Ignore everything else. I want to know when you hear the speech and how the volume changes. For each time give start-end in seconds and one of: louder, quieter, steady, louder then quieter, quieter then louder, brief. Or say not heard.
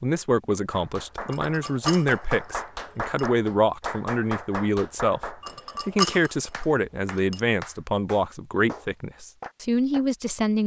0.0-10.6 steady.